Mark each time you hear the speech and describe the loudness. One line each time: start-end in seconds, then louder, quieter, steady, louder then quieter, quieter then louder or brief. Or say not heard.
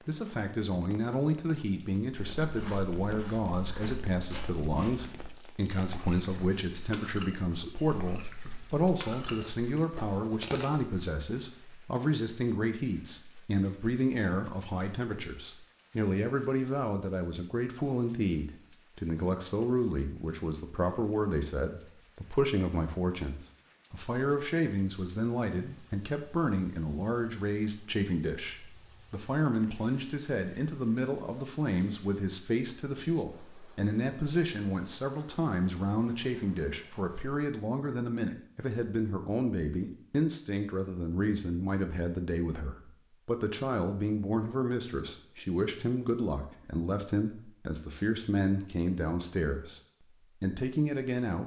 0.1-49.8 steady
50.4-51.4 brief.